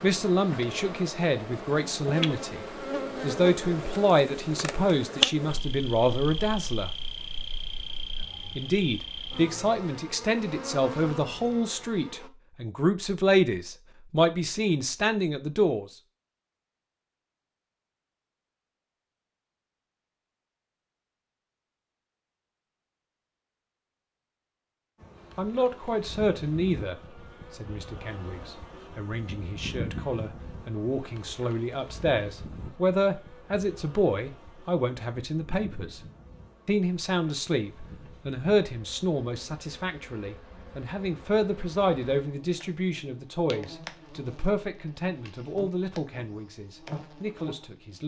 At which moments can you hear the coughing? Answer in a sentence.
The coughing can't be heard in this clip.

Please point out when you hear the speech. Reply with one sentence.
The speech can be heard from 0.0 to 2.6 s, from 3.2 to 6.9 s, from 8.6 to 15.8 s, from 25.4 to 36.0 s and from 36.6 to 48.0 s.